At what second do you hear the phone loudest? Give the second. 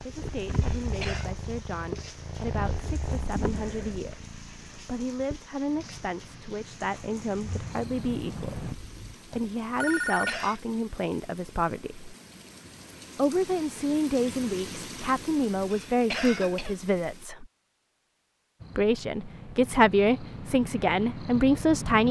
10 s.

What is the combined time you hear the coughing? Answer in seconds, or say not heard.
2 s.